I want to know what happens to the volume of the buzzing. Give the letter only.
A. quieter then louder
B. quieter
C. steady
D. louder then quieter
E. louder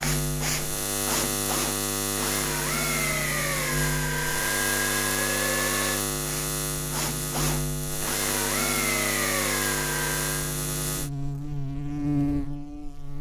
C.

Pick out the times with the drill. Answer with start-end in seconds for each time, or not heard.
0.0-10.6.